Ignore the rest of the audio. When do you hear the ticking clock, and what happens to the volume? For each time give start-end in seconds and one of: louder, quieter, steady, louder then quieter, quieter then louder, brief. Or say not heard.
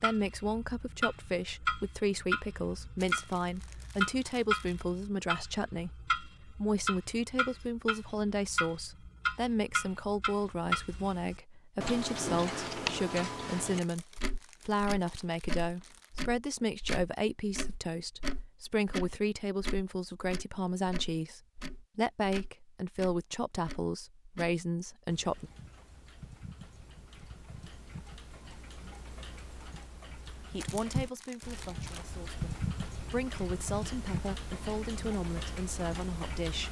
0.0-36.6 quieter then louder.